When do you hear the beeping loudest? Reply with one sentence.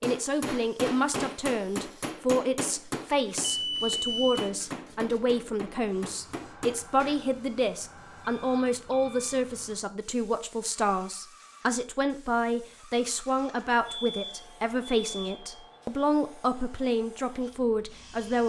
The volume of the beeping peaks at 4 seconds.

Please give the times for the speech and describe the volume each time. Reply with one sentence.
The speech can be heard from 0.0 to 18.4 s, at a steady volume.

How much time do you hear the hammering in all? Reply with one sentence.
You can hear the hammering for 7 seconds altogether.